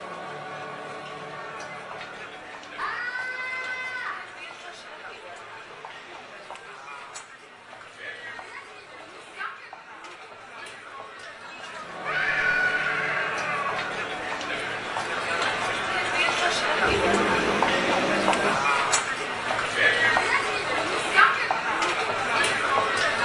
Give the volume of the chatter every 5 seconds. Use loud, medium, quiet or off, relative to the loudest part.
quiet, quiet, medium, loud, loud.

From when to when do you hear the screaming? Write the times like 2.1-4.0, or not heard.
2.8-4.2, 12.1-13.9, 16.8-18.6.